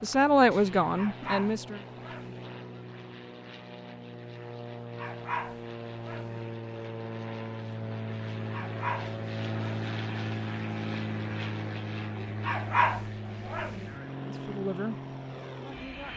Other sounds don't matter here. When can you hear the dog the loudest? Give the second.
13 s.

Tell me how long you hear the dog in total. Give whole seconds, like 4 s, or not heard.
6 s.